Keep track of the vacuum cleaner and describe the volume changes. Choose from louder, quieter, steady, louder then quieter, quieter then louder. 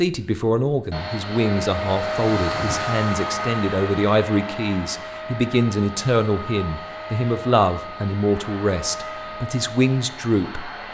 quieter.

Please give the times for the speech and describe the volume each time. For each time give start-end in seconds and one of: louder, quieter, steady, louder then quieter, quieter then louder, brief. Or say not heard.
0.0-10.8 steady.